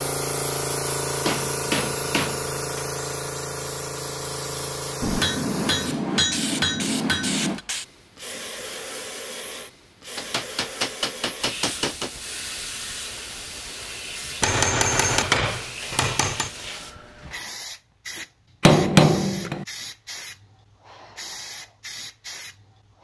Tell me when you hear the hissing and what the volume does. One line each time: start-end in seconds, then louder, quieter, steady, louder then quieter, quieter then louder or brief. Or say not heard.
0.0-23.0 quieter.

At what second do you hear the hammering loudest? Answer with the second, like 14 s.
19 s.